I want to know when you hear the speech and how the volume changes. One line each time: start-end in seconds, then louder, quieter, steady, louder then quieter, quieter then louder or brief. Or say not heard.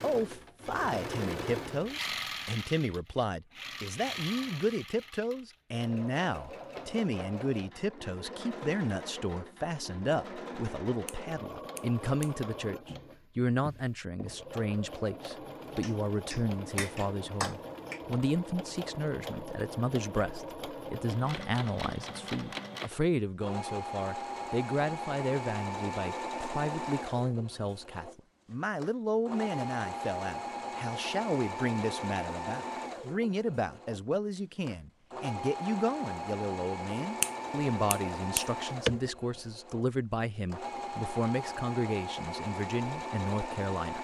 0.0-43.9 steady.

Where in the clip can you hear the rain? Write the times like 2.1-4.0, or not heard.
not heard.